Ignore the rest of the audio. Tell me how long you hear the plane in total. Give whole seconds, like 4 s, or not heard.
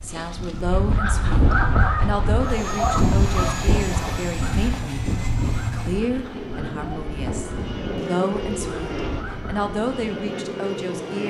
9 s.